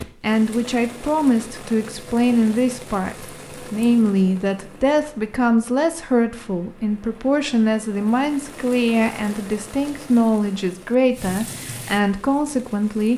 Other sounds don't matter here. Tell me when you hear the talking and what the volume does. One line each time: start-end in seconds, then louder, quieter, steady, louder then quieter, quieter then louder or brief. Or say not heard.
0.2-13.1 steady.